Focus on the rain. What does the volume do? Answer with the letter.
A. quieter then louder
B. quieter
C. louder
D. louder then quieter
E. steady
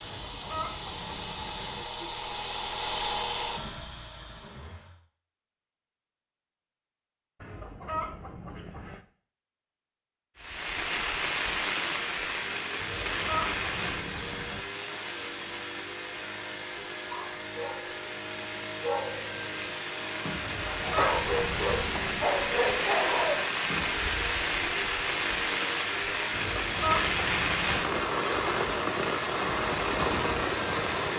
A.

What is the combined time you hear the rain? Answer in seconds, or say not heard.
21 s.